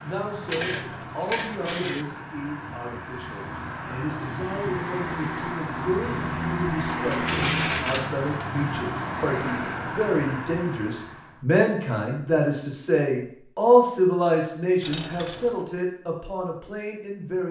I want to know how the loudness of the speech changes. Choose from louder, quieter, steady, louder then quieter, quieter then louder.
louder.